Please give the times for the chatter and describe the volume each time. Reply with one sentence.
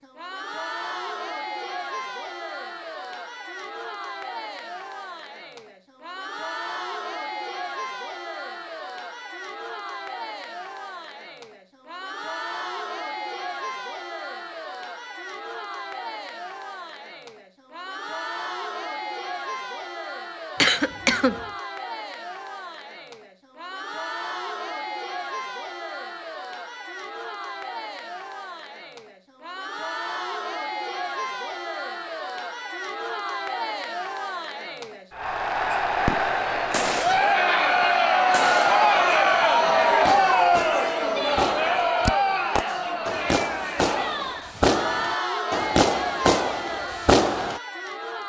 You can hear the chatter from 0.0 to 48.2 s, getting louder.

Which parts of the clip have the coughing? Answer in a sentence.
The coughing can be heard from 20.6 to 21.4 s.